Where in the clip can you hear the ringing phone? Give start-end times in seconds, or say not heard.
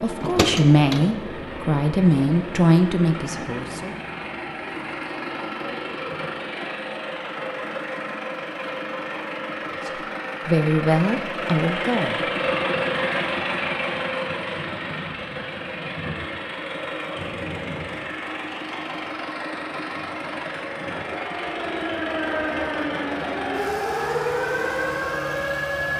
not heard.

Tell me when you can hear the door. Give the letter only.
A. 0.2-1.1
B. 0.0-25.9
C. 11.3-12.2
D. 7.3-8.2
A.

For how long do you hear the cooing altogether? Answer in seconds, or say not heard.
not heard.